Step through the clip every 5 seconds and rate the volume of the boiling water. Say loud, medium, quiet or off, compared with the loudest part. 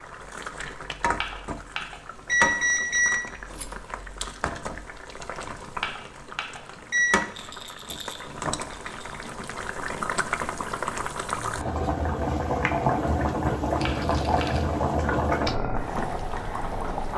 medium, medium, loud, loud.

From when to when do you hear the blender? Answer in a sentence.
You can't hear the blender here.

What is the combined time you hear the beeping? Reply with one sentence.
You can hear the beeping for 4 seconds altogether.